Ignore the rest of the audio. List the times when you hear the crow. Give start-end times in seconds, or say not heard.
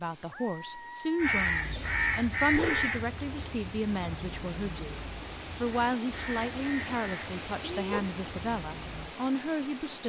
1.1-9.2.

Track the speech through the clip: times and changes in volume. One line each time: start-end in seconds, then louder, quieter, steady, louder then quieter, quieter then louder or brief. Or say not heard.
0.0-10.0 steady.